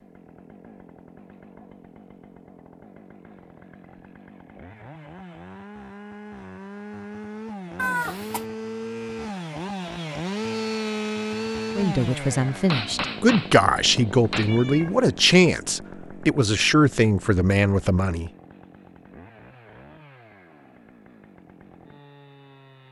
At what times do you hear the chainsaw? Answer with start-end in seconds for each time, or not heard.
0.0-22.8.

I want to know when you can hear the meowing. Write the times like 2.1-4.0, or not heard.
7.8-8.4, 14.4-15.0.